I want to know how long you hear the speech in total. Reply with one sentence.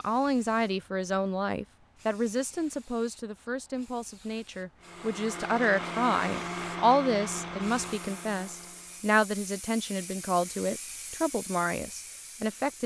You can hear the speech for 13 seconds altogether.